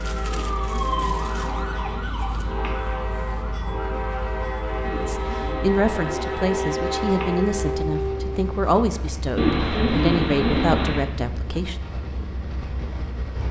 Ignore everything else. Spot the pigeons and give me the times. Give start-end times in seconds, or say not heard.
0.2-2.7, 4.8-7.3, 9.3-11.1.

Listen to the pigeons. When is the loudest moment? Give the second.
10 s.